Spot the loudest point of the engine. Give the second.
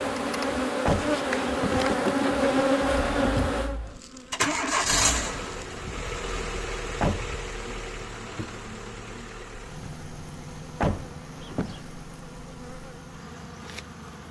5 s.